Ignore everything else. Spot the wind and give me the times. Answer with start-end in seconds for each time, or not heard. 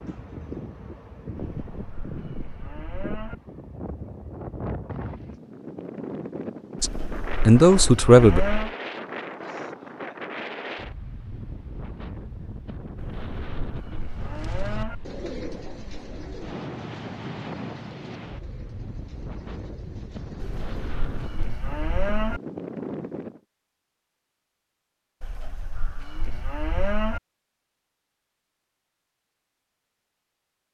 0.0-23.4.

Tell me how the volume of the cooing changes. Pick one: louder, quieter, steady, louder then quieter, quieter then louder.
quieter.